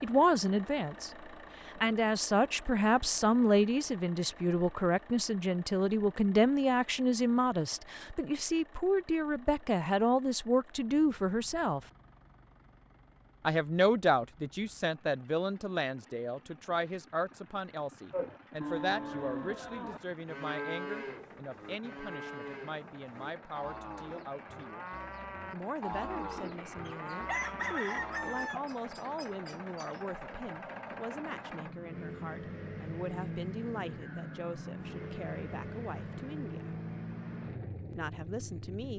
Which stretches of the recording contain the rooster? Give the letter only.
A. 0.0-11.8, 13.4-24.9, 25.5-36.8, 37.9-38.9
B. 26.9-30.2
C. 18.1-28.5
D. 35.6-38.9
B.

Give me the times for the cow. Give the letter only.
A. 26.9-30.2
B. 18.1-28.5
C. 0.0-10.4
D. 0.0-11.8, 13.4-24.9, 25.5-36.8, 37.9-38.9
B.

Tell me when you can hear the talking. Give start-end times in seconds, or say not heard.
0.0-11.8, 13.4-24.9, 25.5-36.8, 37.9-38.9.